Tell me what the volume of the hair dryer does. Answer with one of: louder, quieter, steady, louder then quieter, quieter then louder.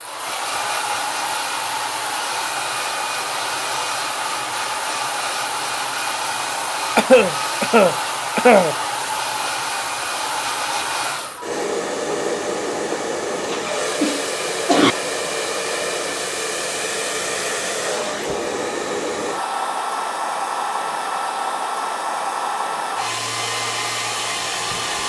steady.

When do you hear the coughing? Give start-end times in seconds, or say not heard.
7.0-8.8, 12.9-14.9.